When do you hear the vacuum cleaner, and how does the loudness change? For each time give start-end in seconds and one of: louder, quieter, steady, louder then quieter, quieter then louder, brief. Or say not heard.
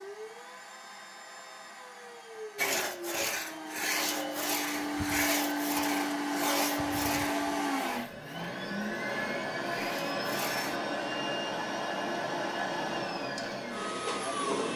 0.0-14.7 louder.